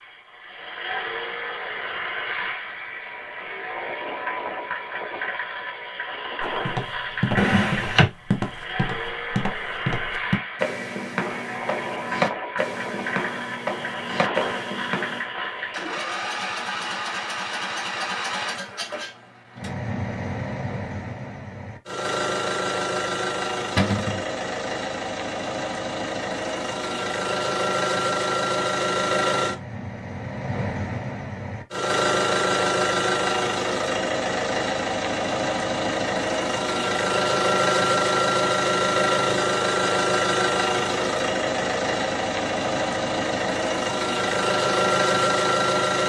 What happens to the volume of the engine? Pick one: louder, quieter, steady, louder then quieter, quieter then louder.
louder.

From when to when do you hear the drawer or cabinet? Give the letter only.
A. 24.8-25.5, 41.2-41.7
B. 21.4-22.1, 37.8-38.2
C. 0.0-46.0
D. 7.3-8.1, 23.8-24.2
D.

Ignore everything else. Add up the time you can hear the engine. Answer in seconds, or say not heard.
46 s.